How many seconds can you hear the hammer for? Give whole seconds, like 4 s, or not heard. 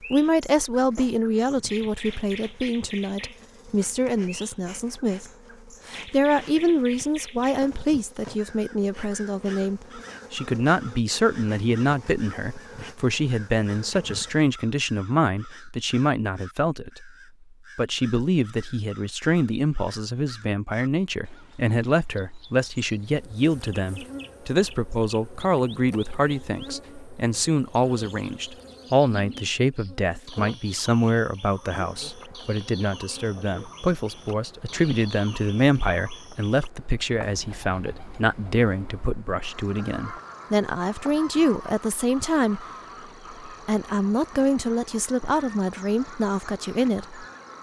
not heard.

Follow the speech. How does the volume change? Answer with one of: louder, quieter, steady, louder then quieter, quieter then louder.
steady.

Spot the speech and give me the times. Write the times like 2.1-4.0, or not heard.
0.1-5.2, 5.8-17.1, 17.8-42.6, 43.5-47.2.